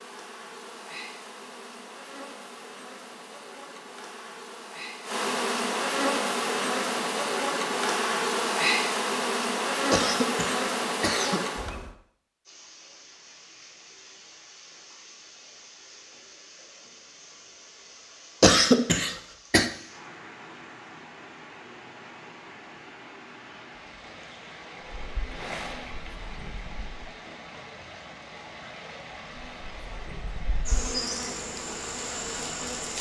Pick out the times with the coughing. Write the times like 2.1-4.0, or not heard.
9.9-11.4, 18.4-19.7.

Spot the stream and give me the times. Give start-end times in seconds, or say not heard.
12.4-32.9.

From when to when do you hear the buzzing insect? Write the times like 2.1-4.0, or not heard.
0.0-11.9, 25.0-26.9, 29.3-32.9.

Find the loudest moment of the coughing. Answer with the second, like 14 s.
19 s.